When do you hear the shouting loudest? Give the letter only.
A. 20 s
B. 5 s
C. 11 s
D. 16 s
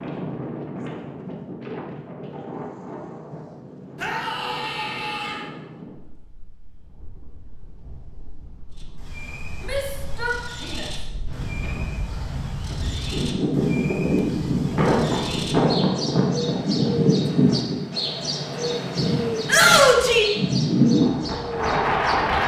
A.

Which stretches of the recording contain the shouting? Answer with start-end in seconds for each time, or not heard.
4.0-5.5, 9.6-10.9, 19.4-20.2.